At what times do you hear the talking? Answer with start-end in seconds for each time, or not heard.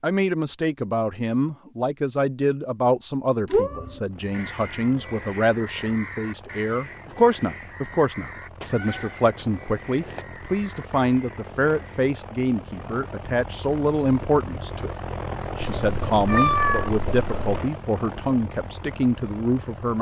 0.0-14.9, 15.6-19.9.